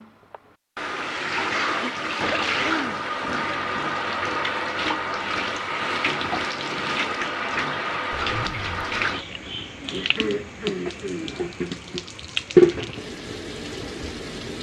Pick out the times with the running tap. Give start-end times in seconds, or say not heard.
0.3-14.5.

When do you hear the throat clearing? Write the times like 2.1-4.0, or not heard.
1.4-3.0, 9.9-11.4.